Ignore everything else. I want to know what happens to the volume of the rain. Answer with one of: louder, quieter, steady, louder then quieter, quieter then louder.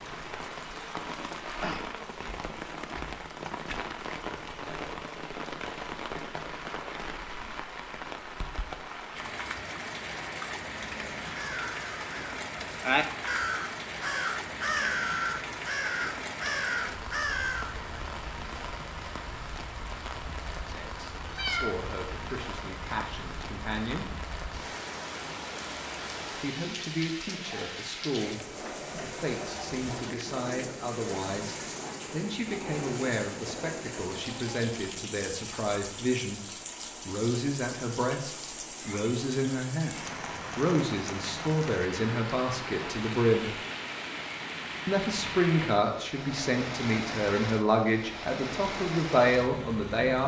steady.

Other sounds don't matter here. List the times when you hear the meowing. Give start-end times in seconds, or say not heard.
21.2-21.7.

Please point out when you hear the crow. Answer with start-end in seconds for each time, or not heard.
11.2-17.8.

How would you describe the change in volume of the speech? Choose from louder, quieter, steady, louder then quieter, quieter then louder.
louder.